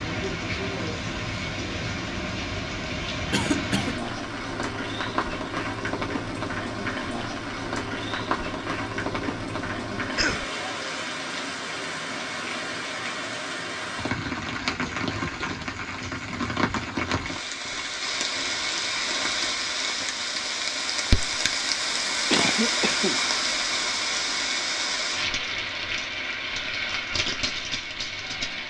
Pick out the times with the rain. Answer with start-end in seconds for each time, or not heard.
0.0-28.6.